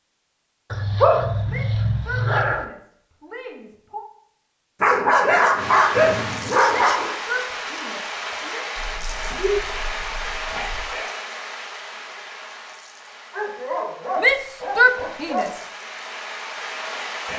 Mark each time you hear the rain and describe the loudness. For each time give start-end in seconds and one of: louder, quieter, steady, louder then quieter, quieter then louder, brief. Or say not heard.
5.5-17.3 quieter then louder.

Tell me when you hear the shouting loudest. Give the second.
15 s.